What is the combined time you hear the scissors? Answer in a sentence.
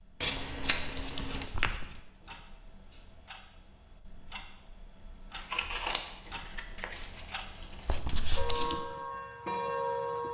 The scissors can be heard for 4 seconds in total.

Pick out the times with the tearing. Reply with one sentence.
The tearing can be heard from 0.3 to 2.0 s and from 7.8 to 8.8 s.